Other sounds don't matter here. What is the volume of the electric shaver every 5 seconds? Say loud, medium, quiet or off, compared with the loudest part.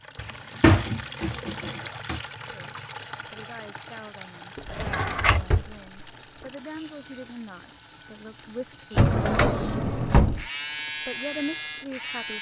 off, quiet, loud.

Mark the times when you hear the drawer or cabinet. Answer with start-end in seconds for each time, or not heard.
0.1-2.2, 4.5-5.7, 8.9-10.4.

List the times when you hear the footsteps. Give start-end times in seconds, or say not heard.
not heard.